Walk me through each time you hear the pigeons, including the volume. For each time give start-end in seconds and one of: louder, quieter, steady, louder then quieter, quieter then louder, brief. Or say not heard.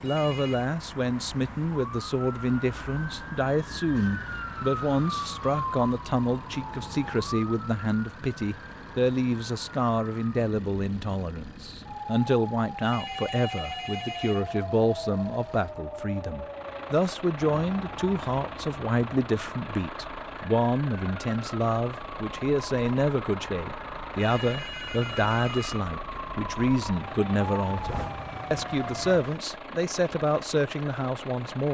not heard.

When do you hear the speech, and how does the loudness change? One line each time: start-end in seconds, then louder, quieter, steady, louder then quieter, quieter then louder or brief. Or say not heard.
0.0-31.7 steady.